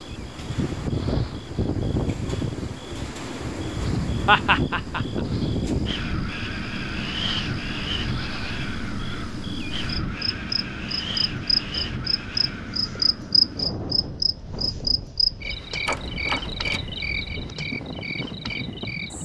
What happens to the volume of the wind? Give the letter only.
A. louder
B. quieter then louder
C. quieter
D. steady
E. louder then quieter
C.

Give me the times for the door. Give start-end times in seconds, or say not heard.
15.8-16.8.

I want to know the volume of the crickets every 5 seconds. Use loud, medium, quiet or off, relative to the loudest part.
quiet, quiet, loud, medium.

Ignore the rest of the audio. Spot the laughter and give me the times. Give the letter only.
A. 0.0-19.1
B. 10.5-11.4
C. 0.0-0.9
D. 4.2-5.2
D.